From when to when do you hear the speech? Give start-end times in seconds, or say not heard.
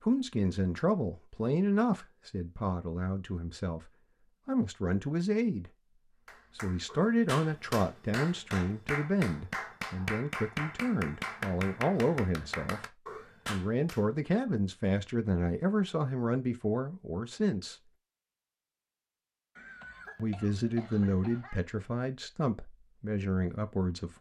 0.0-5.8, 6.5-17.9, 20.1-24.1.